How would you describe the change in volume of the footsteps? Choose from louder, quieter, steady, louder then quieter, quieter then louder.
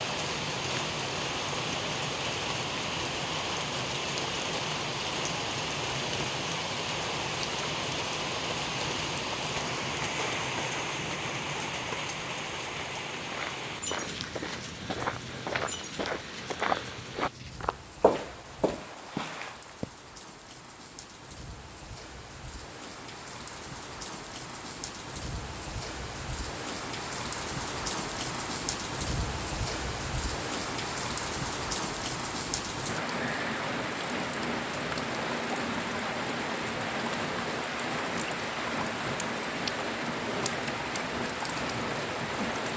louder then quieter.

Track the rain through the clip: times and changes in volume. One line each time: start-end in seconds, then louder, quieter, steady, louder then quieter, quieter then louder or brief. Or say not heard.
0.0-42.7 quieter then louder.